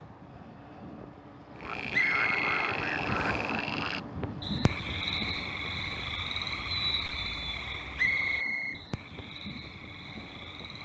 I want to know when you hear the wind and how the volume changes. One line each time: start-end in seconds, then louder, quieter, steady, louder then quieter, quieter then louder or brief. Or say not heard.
0.0-10.8 louder then quieter.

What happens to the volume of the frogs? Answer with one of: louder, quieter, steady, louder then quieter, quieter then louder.
quieter.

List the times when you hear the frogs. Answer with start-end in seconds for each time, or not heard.
1.6-10.8.